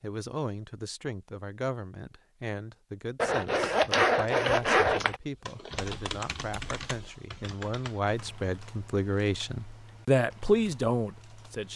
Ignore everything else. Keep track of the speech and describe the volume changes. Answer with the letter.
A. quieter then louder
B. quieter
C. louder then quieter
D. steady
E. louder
E.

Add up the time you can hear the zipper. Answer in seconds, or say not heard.
2 s.